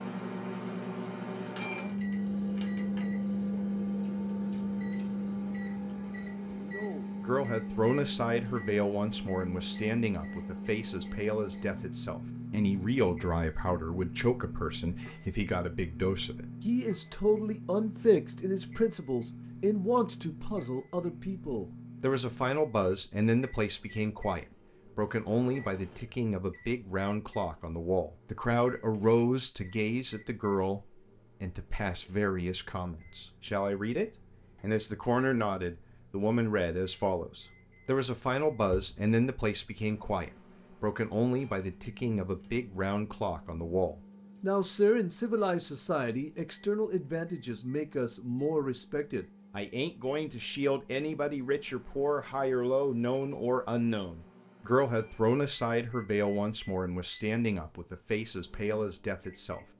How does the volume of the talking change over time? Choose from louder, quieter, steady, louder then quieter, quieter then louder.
steady.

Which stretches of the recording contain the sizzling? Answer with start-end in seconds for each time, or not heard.
not heard.